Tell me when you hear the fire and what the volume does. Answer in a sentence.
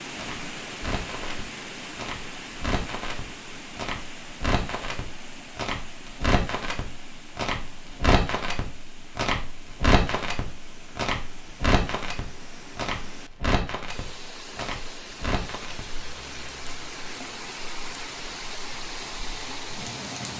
The fire can be heard from 0.0 to 20.3 s, getting louder then quieter.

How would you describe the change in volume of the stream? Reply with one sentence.
The volume of the stream goes down, then up.